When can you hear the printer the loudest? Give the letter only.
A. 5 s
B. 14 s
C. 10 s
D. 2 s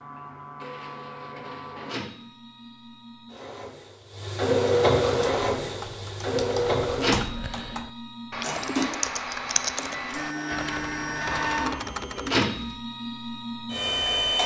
A.